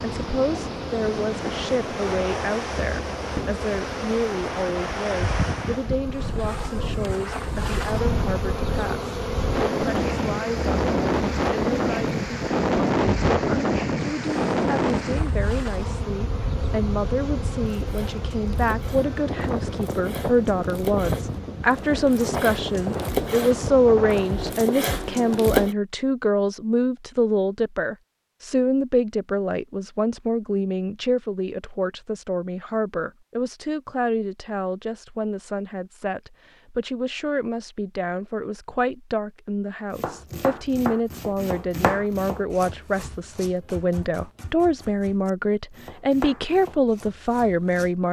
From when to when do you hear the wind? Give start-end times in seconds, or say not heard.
0.0-24.6.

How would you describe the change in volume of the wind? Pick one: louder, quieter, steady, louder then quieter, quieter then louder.
louder then quieter.